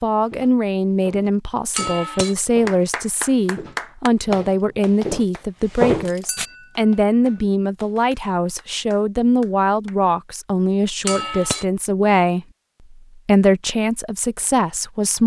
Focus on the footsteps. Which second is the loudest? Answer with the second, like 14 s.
6 s.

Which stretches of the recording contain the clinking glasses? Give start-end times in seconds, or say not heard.
1.7-2.4, 6.2-6.8, 11.1-11.7.